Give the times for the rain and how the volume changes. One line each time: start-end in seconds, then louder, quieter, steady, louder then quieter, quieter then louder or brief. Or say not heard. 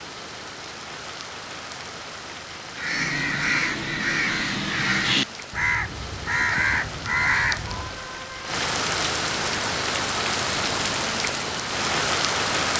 0.0-12.7 louder.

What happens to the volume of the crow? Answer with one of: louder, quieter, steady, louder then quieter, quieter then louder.
steady.